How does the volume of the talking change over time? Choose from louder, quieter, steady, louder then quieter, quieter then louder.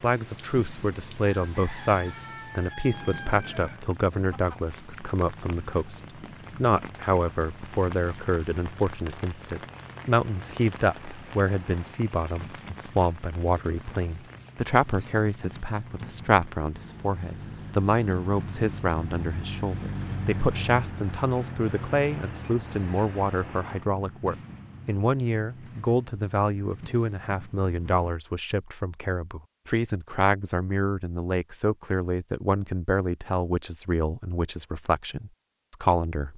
steady.